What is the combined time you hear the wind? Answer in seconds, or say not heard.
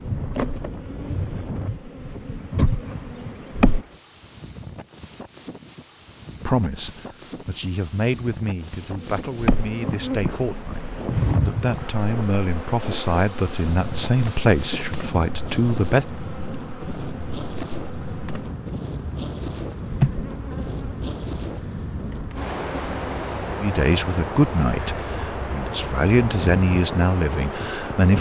28 s.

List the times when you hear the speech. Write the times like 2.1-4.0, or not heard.
6.5-16.1, 23.6-28.1.